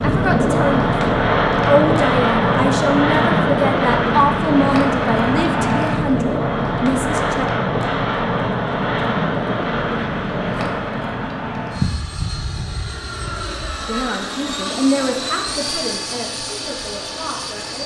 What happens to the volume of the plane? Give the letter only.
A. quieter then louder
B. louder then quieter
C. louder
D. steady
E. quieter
E.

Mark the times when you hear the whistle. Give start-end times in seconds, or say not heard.
not heard.